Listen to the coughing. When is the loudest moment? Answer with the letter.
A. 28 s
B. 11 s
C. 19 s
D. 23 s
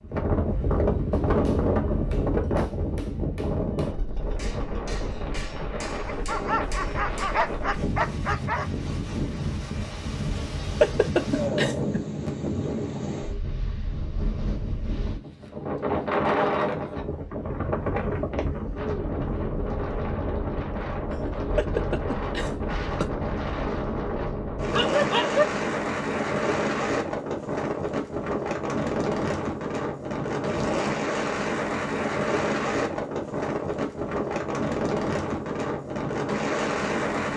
B.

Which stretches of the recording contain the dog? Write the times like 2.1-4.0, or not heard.
6.0-8.7, 24.7-25.4.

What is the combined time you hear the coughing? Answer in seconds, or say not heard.
4 s.